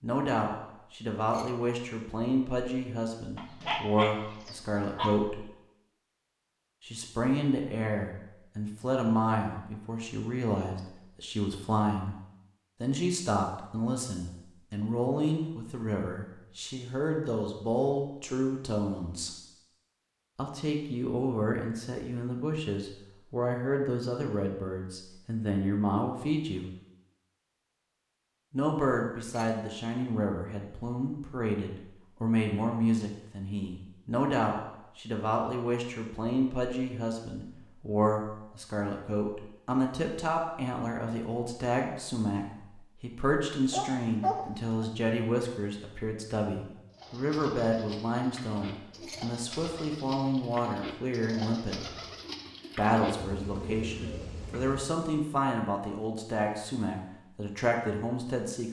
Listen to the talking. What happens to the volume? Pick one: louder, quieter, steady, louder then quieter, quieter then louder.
steady.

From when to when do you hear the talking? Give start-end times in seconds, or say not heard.
0.0-5.5, 6.8-12.2, 12.8-19.3, 20.4-26.7, 28.5-51.9, 52.8-58.6.